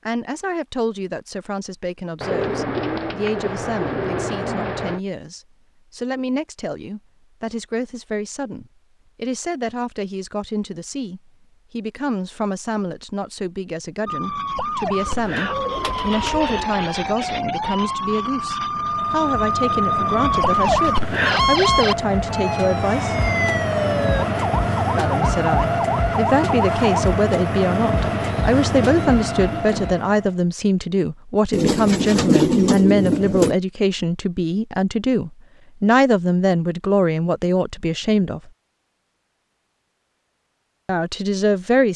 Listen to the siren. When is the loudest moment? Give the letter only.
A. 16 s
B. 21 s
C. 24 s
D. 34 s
B.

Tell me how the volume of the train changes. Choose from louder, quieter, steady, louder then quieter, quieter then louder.
louder.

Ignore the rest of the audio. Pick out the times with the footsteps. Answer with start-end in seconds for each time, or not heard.
not heard.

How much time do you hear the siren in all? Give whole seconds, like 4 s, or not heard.
13 s.